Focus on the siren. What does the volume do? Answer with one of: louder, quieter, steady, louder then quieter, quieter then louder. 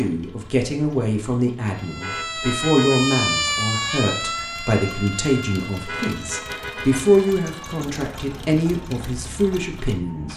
quieter.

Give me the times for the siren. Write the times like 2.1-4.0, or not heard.
1.7-10.3.